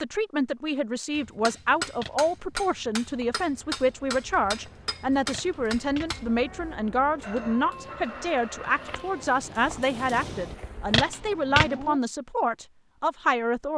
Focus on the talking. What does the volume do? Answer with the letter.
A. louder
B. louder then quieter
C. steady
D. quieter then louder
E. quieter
C.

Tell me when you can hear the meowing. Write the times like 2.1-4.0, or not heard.
1.9-2.4, 5.3-6.8, 10.9-12.0.